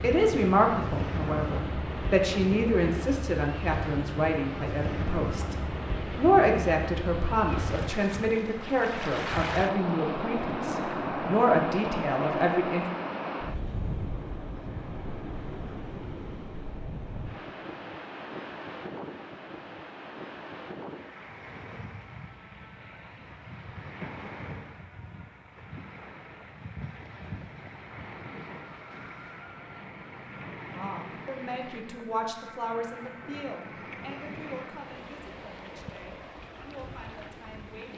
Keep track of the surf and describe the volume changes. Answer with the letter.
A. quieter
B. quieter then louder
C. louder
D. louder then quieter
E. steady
A.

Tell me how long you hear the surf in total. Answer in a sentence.
The surf can be heard for 38 seconds in total.